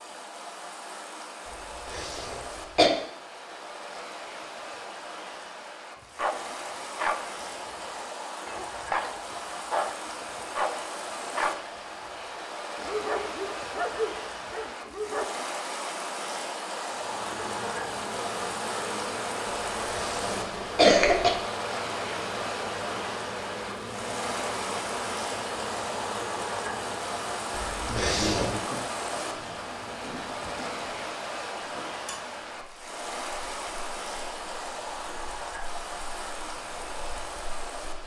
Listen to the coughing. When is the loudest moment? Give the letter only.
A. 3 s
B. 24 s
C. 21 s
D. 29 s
C.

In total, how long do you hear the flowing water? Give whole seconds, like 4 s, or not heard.
38 s.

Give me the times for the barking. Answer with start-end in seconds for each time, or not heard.
6.2-15.3.